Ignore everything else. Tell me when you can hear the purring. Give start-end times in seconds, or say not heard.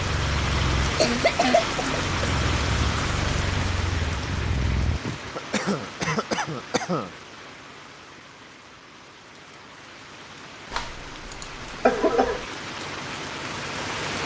0.0-5.0.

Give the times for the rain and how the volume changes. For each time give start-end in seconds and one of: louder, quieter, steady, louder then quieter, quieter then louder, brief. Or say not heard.
0.0-14.2 quieter then louder.